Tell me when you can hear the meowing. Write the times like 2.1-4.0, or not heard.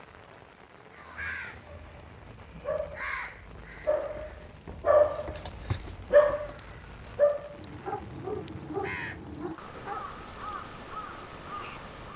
not heard.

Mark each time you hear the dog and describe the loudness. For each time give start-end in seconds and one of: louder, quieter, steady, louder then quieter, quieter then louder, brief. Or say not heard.
1.6-10.1 louder then quieter.